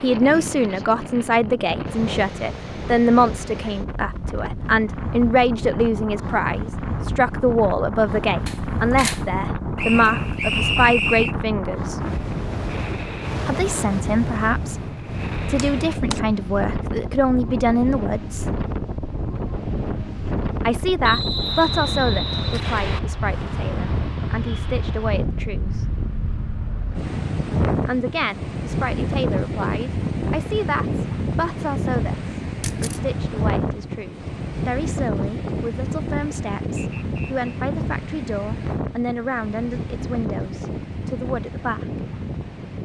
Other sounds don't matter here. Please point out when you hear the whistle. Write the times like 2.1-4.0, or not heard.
9.8-11.3, 21.0-23.0, 36.8-37.4.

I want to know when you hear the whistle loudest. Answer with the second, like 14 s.
11 s.